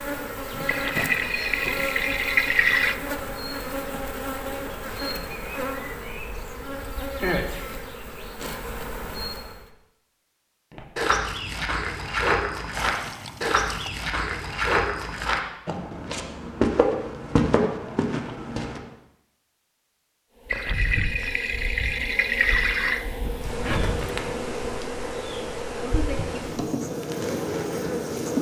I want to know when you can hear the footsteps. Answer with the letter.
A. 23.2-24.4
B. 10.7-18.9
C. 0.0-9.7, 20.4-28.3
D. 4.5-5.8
B.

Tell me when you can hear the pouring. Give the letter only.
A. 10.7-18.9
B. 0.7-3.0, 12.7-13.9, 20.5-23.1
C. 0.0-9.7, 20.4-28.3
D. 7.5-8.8
B.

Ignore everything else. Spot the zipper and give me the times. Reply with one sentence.
The zipper can be heard from 23.2 to 24.4 s.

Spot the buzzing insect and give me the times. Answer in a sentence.
You can hear the buzzing insect from 0.0 to 9.7 s and from 20.4 to 28.3 s.